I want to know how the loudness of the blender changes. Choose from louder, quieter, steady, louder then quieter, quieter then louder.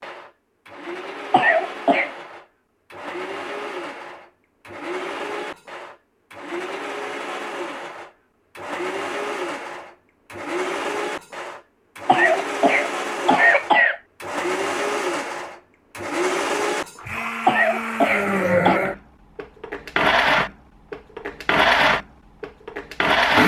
louder.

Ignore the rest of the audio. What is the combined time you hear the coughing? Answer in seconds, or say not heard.
4 s.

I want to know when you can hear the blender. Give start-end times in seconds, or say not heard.
0.0-23.4.